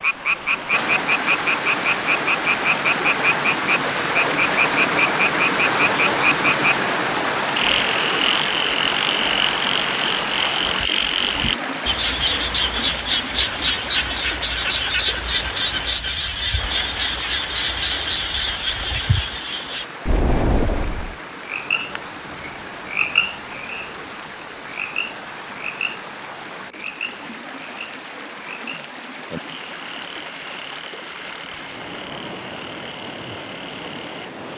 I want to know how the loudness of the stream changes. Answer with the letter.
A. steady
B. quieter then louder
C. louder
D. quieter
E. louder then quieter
D.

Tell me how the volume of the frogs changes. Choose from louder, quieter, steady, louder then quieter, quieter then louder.
quieter.